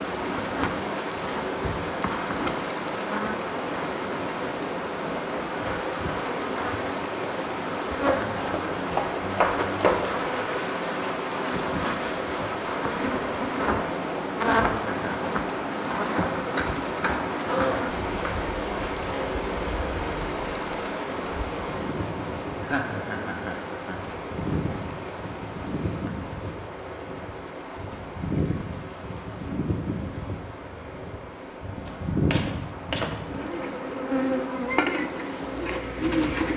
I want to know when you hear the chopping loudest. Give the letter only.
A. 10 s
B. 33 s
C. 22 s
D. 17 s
A.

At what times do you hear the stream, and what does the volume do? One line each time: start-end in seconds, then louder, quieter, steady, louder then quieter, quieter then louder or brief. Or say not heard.
0.0-36.5 quieter.